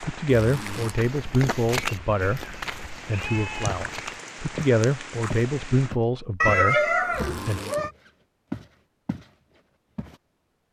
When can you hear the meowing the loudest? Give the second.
7 s.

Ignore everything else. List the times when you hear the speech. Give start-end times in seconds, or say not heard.
0.0-7.6.